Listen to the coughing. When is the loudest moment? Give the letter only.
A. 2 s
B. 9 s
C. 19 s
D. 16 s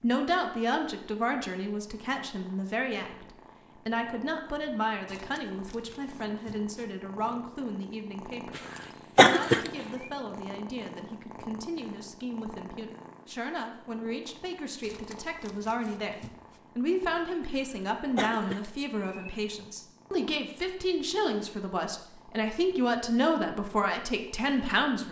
B.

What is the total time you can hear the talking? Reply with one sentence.
The talking can be heard for 25 seconds in total.